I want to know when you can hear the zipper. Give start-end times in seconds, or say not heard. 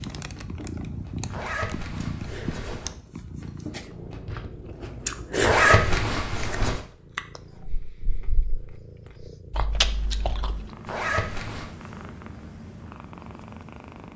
1.3-2.9, 5.4-6.8, 10.8-11.7.